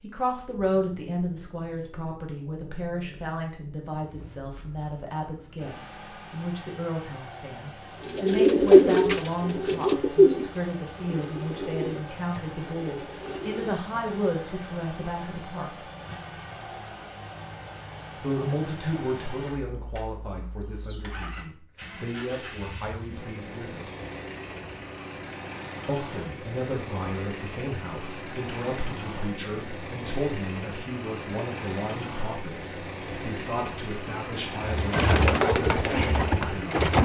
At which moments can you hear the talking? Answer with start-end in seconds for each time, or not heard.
0.0-15.8, 18.2-23.9, 25.9-36.8.